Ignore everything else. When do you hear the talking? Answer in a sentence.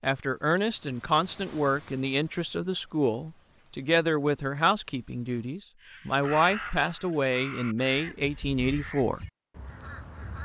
You can hear the talking from 0.0 to 9.2 s.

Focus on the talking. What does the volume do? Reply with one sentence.
The volume of the talking stays about the same.